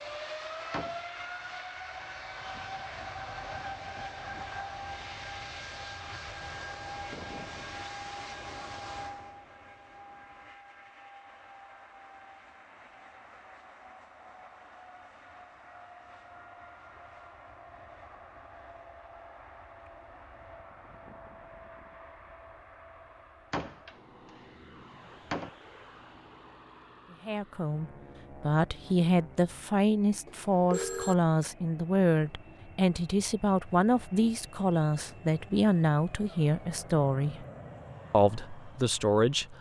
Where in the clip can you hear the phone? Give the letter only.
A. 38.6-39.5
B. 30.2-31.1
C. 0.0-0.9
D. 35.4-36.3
B.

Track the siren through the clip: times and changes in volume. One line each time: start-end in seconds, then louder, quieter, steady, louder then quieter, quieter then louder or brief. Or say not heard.
not heard.